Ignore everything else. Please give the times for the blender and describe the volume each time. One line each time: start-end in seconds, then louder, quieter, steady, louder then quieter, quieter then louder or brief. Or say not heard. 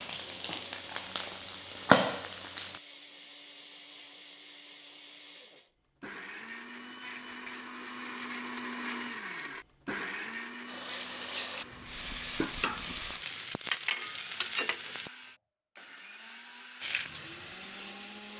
0.1-18.3 louder then quieter.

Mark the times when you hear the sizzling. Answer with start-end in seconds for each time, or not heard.
0.0-2.8, 10.7-15.1, 16.8-18.3.